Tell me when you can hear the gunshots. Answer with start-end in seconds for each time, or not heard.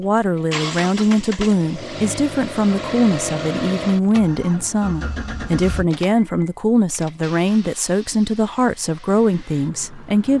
not heard.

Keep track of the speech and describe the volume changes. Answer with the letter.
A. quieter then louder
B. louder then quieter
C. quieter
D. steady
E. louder
D.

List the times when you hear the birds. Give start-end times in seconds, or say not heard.
not heard.